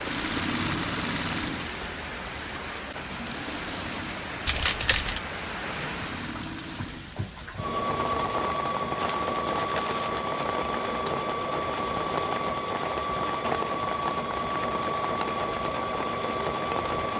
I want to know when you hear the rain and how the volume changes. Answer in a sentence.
You can hear the rain from 0.0 to 17.1 s, at a steady volume.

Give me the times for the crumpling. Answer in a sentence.
You can hear the crumpling from 4.5 to 5.2 s and from 8.9 to 10.3 s.